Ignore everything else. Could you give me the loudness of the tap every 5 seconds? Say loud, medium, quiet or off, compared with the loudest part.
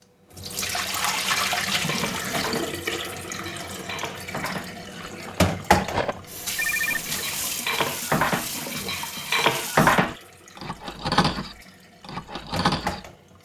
loud, loud, medium.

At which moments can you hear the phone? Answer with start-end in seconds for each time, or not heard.
6.5-7.2.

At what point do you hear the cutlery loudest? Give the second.
10 s.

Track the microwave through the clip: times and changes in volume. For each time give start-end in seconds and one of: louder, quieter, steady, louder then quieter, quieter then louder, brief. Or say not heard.
not heard.